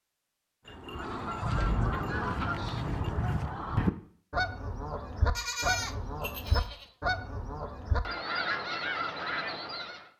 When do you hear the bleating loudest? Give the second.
6 s.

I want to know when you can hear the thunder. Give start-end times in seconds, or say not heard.
1.5-3.0.